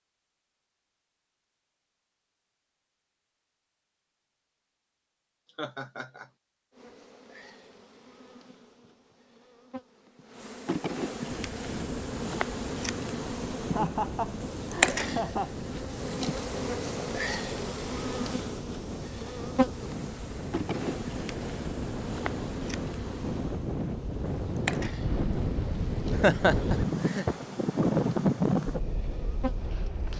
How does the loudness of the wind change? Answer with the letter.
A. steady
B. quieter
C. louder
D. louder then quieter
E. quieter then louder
C.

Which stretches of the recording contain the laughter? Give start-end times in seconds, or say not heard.
5.5-6.2, 13.6-15.6, 26.1-27.4.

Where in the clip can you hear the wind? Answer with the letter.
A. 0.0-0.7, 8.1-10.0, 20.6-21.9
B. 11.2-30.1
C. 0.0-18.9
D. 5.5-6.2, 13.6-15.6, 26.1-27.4
B.